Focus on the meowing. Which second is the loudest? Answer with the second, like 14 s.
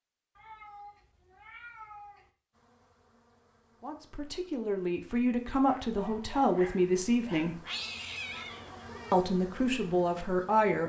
8 s.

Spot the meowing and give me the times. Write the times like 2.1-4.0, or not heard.
0.3-2.3, 7.7-9.2.